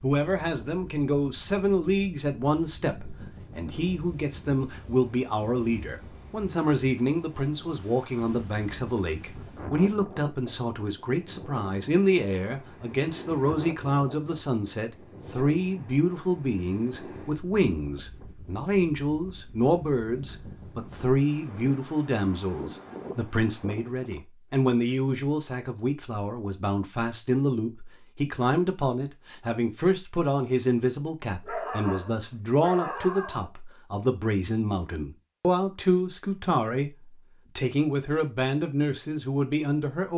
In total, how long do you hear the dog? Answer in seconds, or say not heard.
2 s.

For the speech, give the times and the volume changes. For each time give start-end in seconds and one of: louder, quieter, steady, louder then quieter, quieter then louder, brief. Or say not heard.
0.0-40.1 steady.